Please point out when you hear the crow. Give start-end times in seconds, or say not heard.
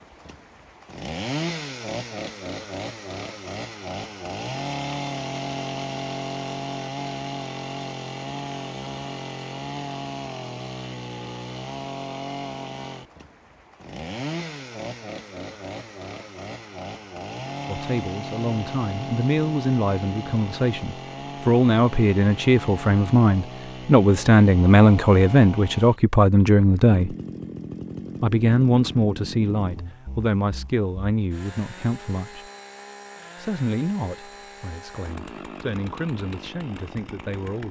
not heard.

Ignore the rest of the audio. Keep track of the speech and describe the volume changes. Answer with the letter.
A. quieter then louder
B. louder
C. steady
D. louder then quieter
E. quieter
D.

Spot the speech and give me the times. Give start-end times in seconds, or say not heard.
17.6-27.1, 28.2-32.5, 33.4-37.6.